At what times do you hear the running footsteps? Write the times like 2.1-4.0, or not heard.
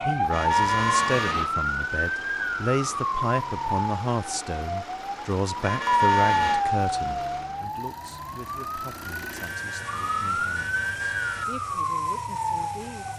not heard.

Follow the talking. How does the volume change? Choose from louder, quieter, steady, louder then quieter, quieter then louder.
quieter.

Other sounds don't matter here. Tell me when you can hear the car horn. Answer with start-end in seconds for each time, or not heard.
0.3-1.5, 5.6-6.7, 9.3-11.4.